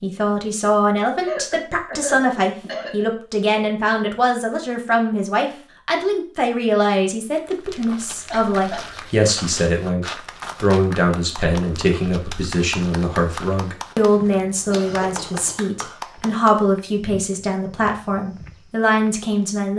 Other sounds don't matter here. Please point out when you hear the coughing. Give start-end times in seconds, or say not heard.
1.2-3.0, 8.3-8.9, 14.7-15.9.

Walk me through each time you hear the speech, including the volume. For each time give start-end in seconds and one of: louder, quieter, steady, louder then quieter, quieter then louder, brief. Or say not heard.
0.0-19.7 steady.